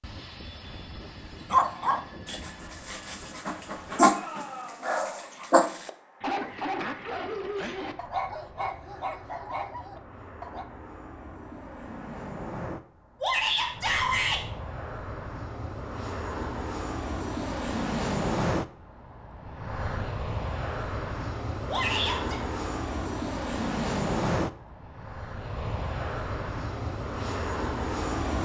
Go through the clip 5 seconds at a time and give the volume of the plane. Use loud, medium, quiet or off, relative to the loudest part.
quiet, quiet, medium, loud, loud, loud.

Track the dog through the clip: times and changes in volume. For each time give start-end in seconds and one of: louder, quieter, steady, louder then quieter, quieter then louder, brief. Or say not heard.
1.5-10.7 louder then quieter.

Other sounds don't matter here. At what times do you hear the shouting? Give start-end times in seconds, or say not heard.
3.9-4.9, 13.2-14.4, 21.6-22.4.